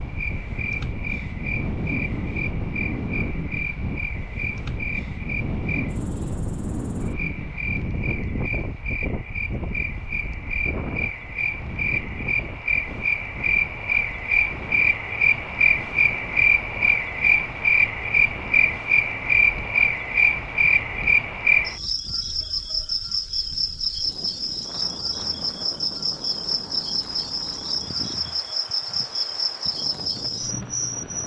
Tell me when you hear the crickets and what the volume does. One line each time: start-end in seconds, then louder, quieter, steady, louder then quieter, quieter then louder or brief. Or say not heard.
0.0-31.2 louder then quieter.